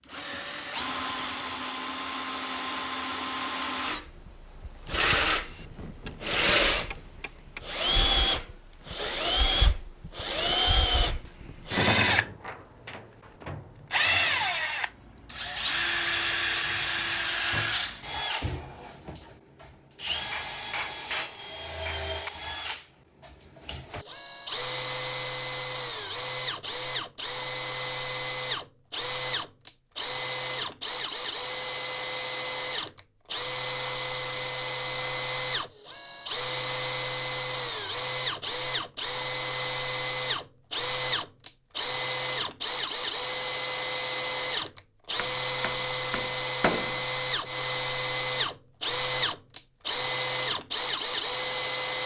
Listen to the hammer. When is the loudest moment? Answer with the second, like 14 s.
47 s.